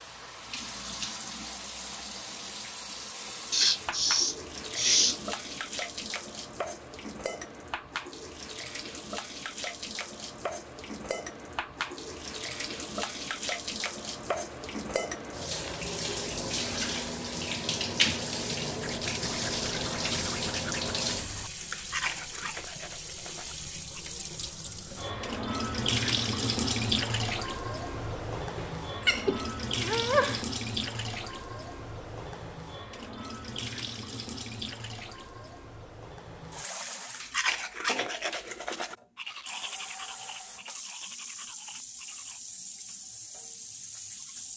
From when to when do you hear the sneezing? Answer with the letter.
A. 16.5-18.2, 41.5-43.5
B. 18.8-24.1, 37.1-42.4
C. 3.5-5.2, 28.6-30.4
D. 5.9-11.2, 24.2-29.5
C.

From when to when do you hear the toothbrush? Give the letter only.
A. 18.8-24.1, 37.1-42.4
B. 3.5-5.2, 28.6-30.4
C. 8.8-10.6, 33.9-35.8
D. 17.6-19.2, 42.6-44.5
A.